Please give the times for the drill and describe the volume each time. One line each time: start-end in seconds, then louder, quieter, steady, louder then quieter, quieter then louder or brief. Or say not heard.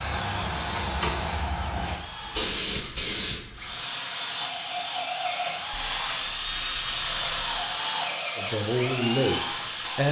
0.0-10.0 louder.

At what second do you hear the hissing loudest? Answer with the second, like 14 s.
3 s.